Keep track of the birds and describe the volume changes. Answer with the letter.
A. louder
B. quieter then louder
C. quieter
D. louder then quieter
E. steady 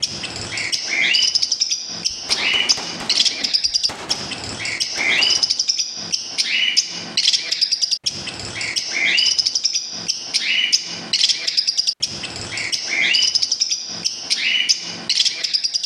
E.